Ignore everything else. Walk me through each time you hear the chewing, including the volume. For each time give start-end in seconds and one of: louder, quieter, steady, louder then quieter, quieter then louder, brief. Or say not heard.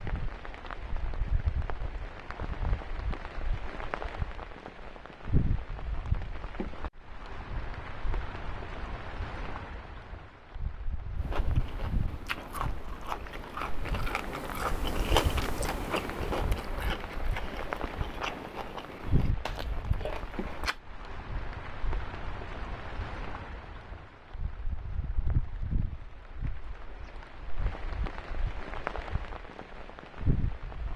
11.2-20.8 louder then quieter.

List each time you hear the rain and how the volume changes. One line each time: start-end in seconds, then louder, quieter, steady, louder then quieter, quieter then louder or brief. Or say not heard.
0.0-30.9 steady.